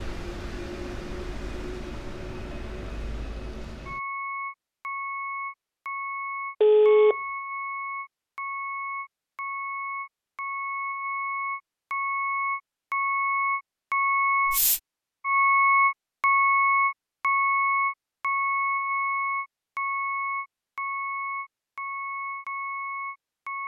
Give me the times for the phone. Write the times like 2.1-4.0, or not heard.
6.6-7.2.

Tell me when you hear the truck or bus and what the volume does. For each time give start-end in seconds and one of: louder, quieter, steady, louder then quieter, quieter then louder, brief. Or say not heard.
0.0-23.6 louder then quieter.